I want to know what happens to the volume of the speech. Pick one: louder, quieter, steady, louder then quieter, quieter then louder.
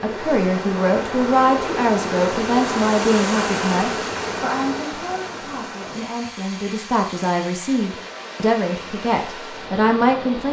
quieter then louder.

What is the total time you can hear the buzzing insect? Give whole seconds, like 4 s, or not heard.
5 s.